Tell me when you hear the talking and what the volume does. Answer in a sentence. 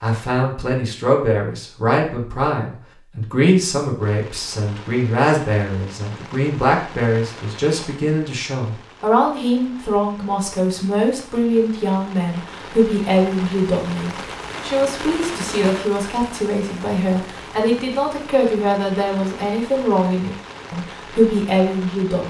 The talking can be heard from 0.0 to 22.2 s, at a steady volume.